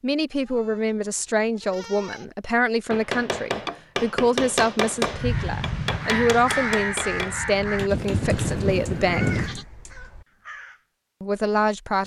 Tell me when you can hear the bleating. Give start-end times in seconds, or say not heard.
0.3-2.4, 7.8-9.7.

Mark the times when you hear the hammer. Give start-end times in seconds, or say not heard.
2.9-8.5.